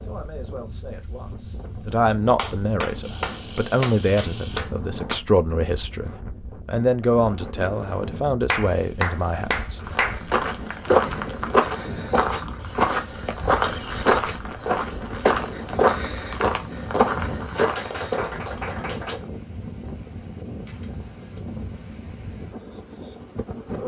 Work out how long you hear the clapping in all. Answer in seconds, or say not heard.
6 s.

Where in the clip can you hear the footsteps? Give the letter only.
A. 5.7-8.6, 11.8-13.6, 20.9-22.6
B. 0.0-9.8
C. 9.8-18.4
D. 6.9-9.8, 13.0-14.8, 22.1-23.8
C.